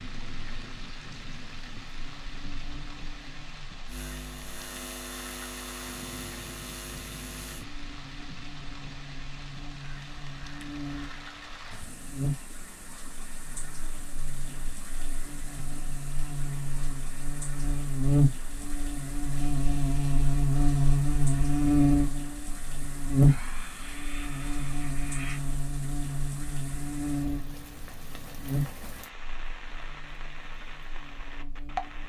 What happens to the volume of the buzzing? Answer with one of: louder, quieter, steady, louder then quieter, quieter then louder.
louder then quieter.